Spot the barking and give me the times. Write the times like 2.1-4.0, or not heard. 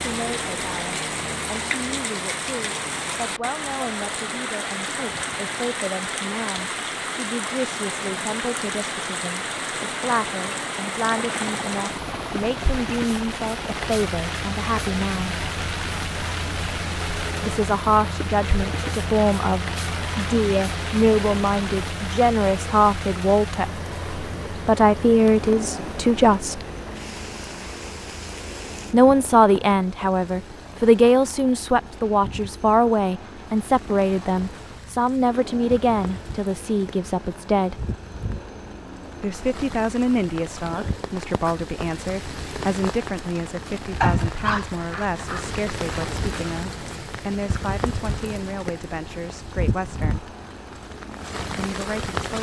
44.0-45.5.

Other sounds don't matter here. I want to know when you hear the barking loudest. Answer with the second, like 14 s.
44 s.